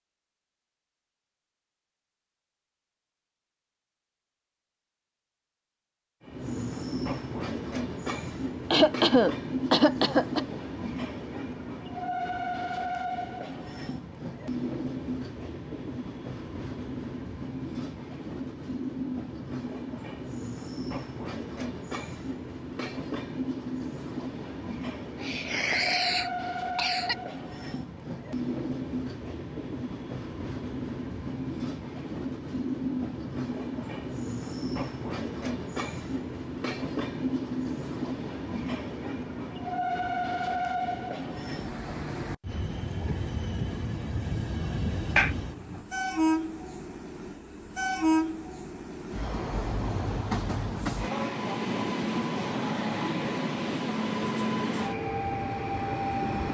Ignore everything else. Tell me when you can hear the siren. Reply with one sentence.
The siren can't be heard in this clip.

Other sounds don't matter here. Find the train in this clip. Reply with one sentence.
You can hear the train from 6.2 to 56.4 s.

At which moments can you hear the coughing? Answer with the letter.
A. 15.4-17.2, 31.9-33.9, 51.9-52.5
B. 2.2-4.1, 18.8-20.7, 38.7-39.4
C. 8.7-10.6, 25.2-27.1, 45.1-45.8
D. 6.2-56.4
C.